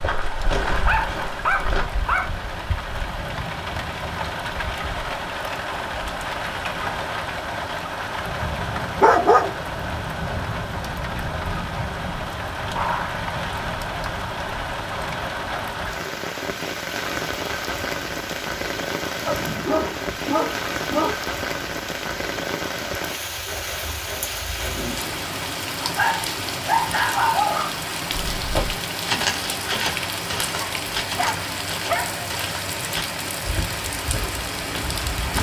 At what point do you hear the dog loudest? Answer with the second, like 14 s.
9 s.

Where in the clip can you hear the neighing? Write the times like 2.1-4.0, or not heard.
not heard.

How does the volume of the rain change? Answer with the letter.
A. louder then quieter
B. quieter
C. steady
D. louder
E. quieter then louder
C.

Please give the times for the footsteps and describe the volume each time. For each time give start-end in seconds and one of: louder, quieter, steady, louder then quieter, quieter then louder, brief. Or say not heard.
0.0-1.9 brief
28.1-35.3 quieter.